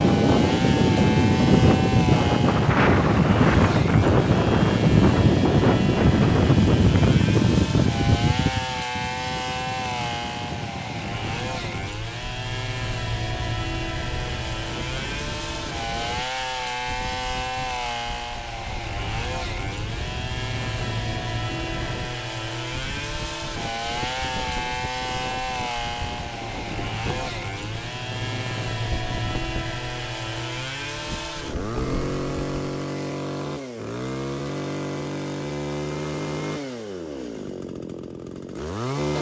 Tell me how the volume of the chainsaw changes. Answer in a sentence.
The loudness of the chainsaw stays about the same.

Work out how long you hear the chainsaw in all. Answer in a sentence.
You can hear the chainsaw for 39 seconds altogether.